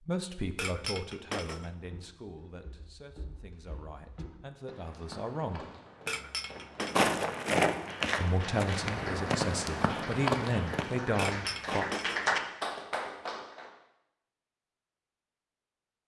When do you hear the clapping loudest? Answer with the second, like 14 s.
12 s.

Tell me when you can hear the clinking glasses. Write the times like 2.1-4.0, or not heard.
0.6-1.7, 6.0-7.2, 11.2-12.3.